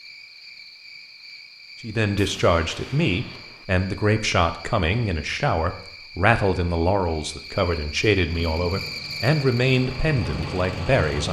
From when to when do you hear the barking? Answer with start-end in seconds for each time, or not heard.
not heard.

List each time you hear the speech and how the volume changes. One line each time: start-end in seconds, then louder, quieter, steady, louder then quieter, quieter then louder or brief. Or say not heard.
1.8-11.2 steady.